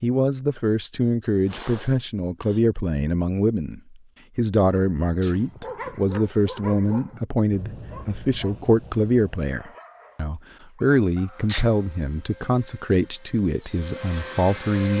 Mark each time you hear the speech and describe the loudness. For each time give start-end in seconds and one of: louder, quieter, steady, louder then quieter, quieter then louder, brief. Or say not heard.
0.0-14.9 steady.